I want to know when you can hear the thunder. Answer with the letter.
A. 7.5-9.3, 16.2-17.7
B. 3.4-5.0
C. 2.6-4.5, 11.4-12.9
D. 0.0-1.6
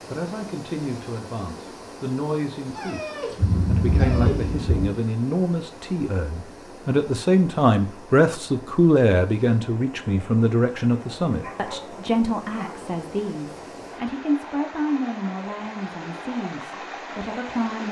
B.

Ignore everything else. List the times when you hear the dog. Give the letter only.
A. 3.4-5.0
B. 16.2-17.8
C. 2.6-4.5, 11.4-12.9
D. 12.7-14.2
C.